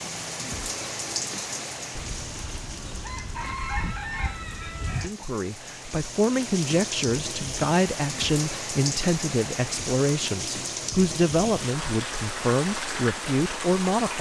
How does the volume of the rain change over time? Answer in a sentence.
The loudness of the rain goes down, then up.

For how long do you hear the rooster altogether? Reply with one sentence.
You can hear the rooster for 3 seconds altogether.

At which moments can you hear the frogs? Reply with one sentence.
You can't hear the frogs here.